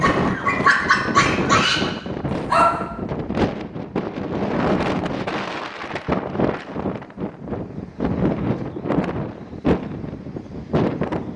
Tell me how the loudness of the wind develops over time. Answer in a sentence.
The loudness of the wind stays about the same.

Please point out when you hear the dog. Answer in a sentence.
The dog can be heard from 0.0 to 2.8 s.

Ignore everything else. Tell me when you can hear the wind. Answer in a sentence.
You can hear the wind from 0.0 to 11.3 s.